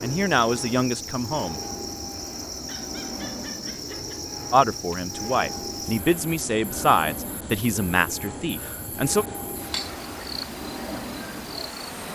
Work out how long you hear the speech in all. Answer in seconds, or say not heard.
6 s.